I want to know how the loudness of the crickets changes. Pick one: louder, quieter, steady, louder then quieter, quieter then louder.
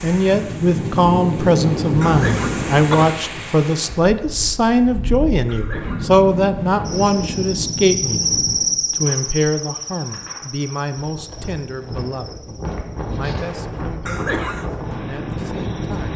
quieter.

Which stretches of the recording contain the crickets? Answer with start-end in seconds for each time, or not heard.
6.8-16.1.